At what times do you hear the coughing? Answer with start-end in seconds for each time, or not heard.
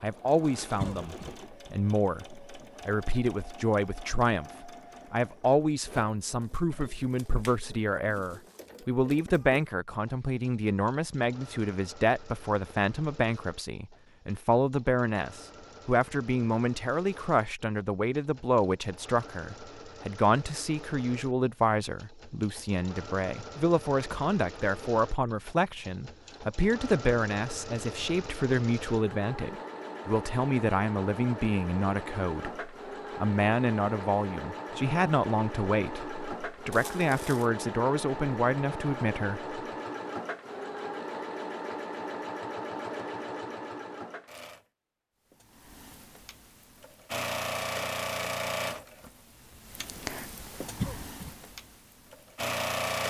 0.8-1.4, 50.8-51.4.